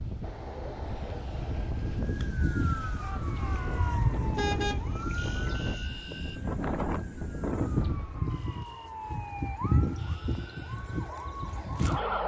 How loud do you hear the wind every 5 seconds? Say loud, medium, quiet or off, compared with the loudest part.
loud, loud, off.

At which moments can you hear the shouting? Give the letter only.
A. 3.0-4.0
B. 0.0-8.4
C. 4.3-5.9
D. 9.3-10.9
A.